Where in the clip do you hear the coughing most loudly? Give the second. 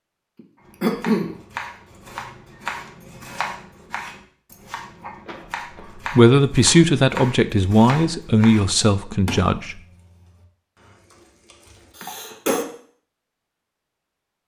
1 s.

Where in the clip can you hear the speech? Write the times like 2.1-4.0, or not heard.
6.0-9.8.